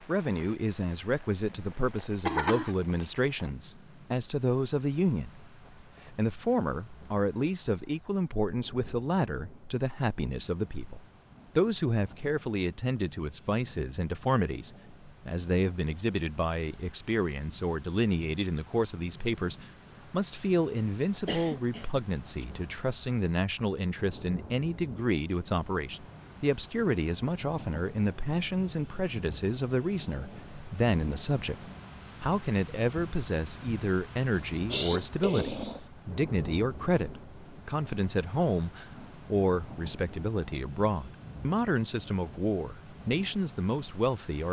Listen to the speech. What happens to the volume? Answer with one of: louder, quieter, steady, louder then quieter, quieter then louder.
steady.